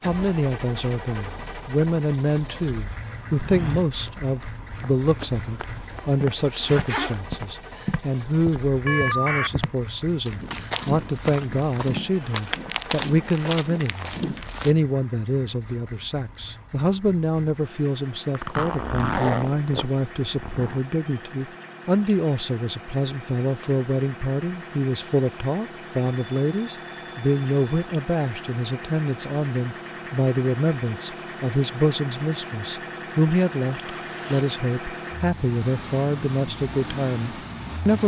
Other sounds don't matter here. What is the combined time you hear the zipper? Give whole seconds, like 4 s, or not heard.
4 s.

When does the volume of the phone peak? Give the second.
9 s.